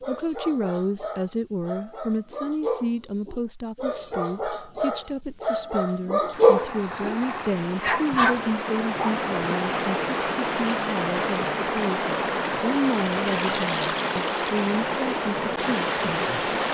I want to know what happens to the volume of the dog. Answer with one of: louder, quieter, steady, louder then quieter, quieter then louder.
louder.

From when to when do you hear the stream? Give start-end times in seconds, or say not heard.
6.3-16.6.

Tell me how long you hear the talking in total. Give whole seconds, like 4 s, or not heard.
16 s.